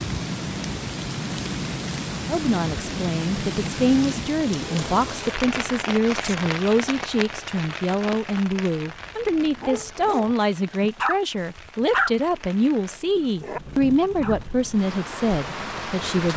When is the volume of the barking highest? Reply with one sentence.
The volume of the barking peaks at 12 seconds.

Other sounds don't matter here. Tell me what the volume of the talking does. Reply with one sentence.
The volume of the talking stays about the same.